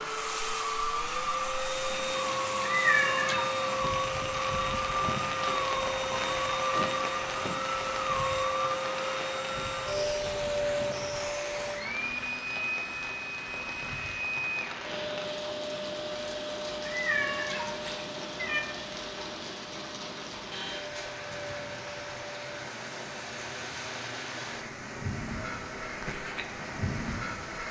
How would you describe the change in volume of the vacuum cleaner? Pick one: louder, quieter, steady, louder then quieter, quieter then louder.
quieter.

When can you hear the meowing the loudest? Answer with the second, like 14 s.
3 s.